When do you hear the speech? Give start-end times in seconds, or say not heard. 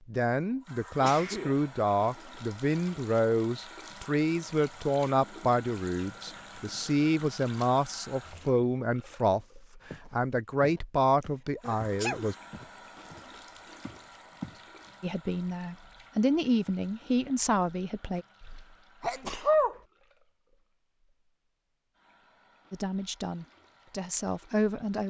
0.1-12.3, 15.0-18.2, 22.7-25.0.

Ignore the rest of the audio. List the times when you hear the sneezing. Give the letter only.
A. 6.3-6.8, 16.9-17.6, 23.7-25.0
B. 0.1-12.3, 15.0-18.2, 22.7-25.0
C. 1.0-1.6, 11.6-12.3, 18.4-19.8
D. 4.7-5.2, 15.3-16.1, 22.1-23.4
C.